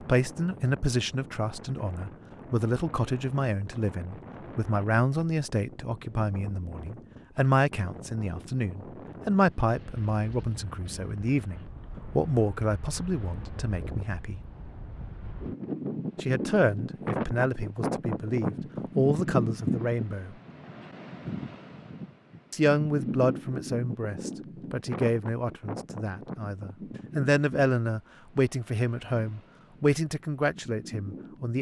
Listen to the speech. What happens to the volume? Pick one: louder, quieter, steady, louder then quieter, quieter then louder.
steady.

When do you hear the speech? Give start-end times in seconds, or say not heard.
0.0-14.4, 16.2-20.4, 22.5-31.5.